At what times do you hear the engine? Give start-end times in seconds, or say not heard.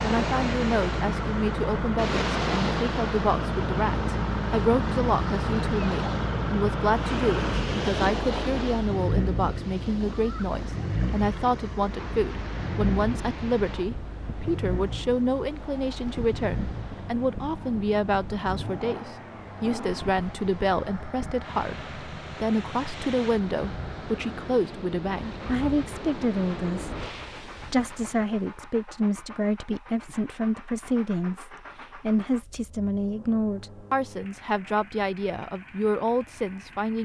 0.0-37.0.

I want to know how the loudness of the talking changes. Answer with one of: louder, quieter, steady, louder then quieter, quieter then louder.
steady.